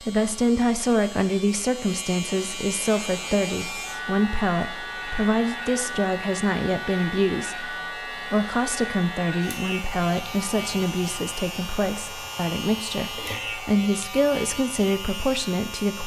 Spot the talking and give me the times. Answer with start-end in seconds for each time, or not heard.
0.0-16.0.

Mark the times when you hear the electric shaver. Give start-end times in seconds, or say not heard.
0.0-16.0.